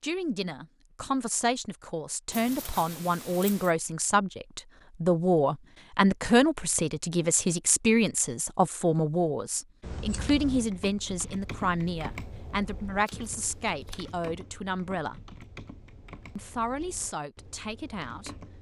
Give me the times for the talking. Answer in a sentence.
The talking can be heard from 0.0 to 15.3 s and from 16.4 to 18.4 s.